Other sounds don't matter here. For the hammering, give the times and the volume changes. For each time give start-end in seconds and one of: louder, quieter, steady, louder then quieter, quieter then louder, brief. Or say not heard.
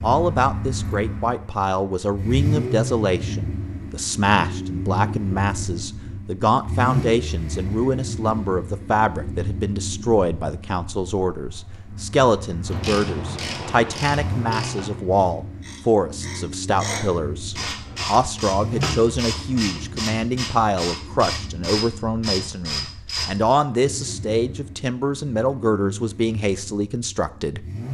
not heard.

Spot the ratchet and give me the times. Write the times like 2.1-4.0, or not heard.
12.7-23.6.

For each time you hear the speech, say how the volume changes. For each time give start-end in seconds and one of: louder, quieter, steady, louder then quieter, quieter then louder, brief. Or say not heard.
0.0-27.6 steady.